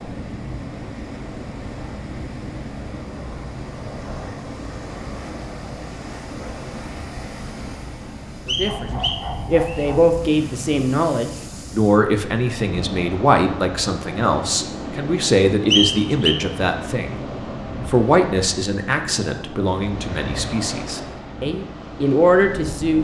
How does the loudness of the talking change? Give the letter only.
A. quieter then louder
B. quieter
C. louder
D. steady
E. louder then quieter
D.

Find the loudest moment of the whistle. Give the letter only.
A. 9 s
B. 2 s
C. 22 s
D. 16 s
D.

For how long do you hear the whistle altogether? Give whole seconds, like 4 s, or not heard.
2 s.